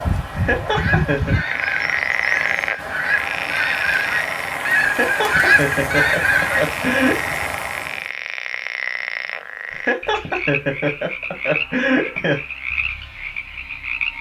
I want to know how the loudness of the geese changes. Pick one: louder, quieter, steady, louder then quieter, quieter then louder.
louder.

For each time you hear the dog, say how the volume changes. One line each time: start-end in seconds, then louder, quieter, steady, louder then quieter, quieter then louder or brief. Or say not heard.
not heard.